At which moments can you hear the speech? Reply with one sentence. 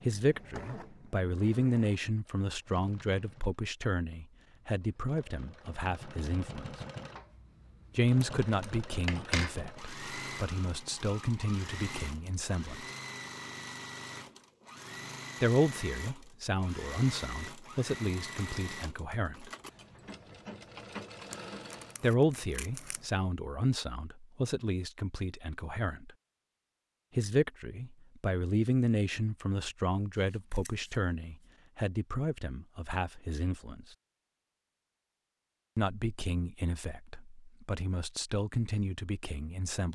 You can hear the speech from 0.1 to 6.8 s, from 8.0 to 12.8 s, from 15.4 to 19.5 s, from 22.0 to 26.1 s, from 27.1 to 33.9 s and from 35.8 to 39.8 s.